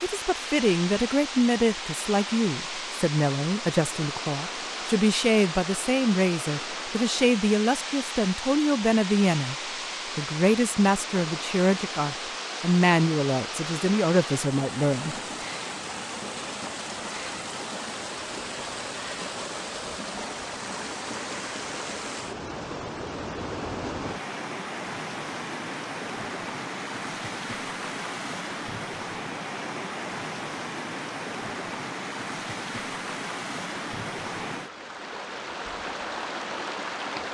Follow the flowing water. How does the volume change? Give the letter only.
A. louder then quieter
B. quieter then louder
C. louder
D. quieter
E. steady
E.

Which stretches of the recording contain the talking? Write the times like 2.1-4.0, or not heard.
0.0-9.6, 10.2-15.2.